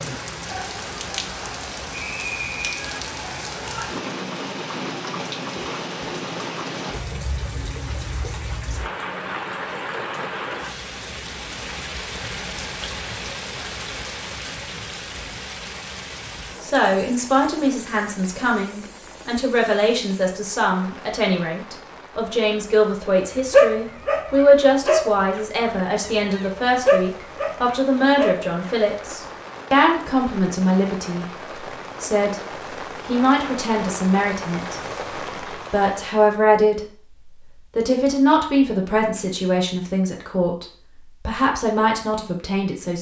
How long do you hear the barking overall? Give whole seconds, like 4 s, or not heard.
6 s.